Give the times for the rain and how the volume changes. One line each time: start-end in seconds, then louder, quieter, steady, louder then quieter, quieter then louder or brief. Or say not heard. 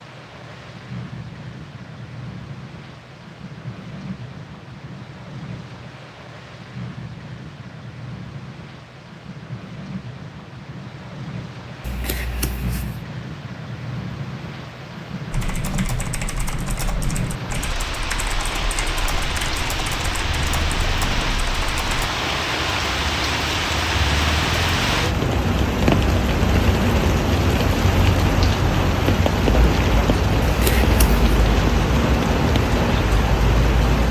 0.0-34.0 louder.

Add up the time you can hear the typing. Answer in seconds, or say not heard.
7 s.